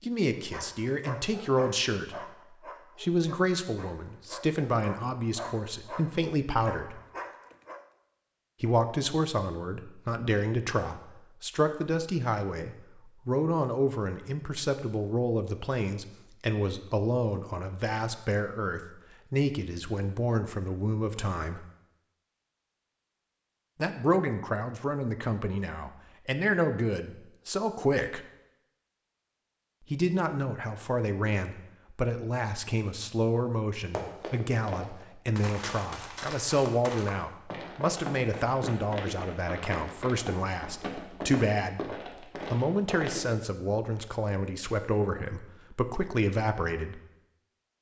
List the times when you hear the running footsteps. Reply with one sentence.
You can hear the running footsteps from 33.9 to 43.3 s.